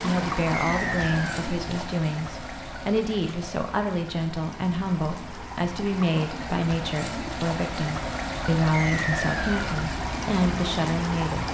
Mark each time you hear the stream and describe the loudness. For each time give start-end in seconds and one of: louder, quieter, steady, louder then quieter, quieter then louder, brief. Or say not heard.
0.0-11.4 quieter then louder.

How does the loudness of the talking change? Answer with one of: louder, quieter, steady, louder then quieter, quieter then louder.
steady.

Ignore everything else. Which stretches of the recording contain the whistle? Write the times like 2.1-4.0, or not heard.
0.6-1.4, 8.7-9.6.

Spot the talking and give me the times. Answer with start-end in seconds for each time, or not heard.
0.0-11.4.